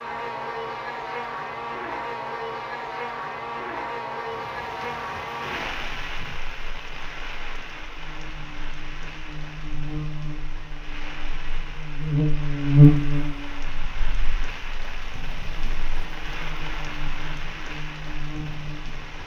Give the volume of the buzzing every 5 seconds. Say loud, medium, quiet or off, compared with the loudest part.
medium, quiet, loud, quiet.